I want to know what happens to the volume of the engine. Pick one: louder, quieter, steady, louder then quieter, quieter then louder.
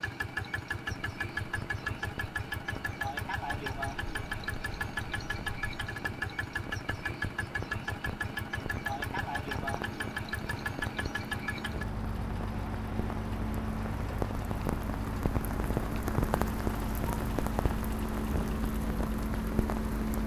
quieter.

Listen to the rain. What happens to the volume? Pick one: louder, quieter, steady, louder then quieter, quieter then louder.
louder.